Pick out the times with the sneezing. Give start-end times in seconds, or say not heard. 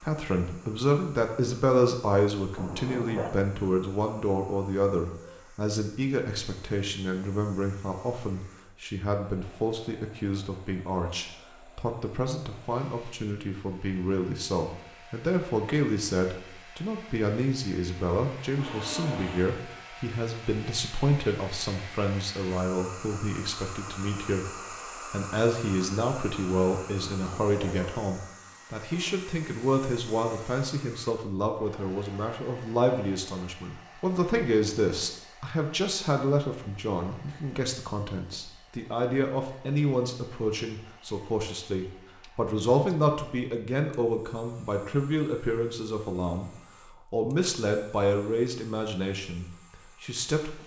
2.5-3.5, 27.0-28.1.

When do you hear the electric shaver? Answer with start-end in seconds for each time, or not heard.
not heard.